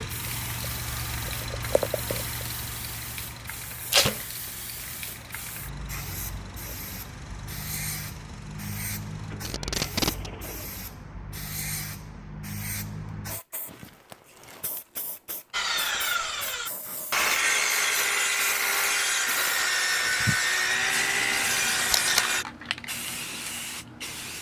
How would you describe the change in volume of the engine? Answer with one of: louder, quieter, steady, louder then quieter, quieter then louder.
quieter.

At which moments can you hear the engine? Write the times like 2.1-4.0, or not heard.
0.0-10.7.